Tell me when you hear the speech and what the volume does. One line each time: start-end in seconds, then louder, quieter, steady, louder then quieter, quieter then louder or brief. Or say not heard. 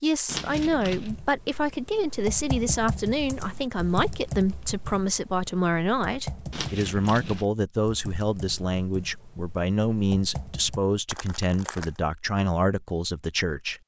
0.0-13.8 steady.